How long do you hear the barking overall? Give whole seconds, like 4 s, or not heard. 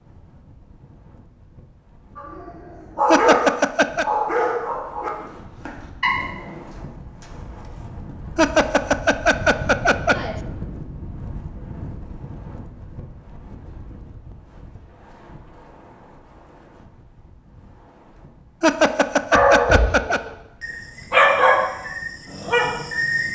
9 s.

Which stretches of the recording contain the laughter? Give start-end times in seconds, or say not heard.
3.0-4.0, 8.3-10.4, 18.6-20.2.